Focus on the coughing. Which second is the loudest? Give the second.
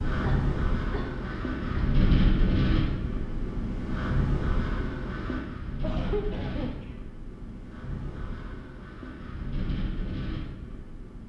6 s.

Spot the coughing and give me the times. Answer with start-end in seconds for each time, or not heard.
0.2-1.9, 5.8-7.0.